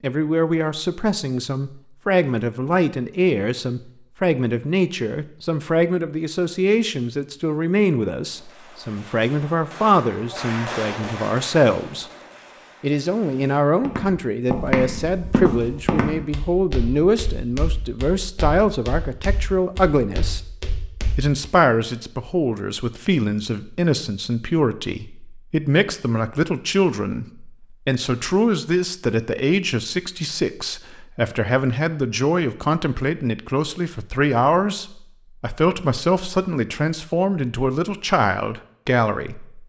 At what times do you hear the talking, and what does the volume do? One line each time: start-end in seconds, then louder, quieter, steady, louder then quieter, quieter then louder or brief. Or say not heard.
0.0-12.1 steady
12.8-20.4 steady
21.1-39.6 steady.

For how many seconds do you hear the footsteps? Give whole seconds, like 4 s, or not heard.
8 s.